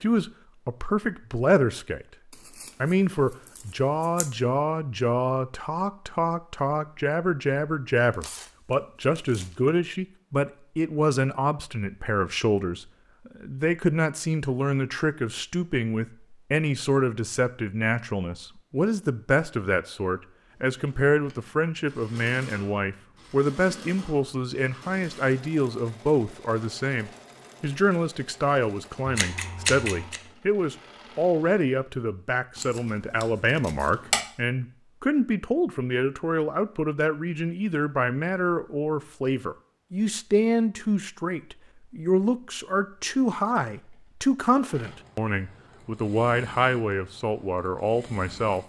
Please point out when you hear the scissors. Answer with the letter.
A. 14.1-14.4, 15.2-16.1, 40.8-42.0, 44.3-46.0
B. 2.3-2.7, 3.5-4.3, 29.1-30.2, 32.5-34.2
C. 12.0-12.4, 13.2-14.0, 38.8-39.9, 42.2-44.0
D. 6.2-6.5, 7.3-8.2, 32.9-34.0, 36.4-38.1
B.